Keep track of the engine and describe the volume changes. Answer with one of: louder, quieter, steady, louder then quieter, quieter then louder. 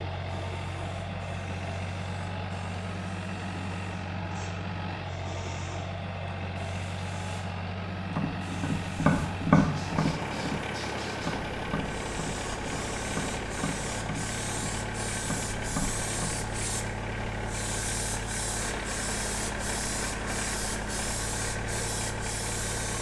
steady.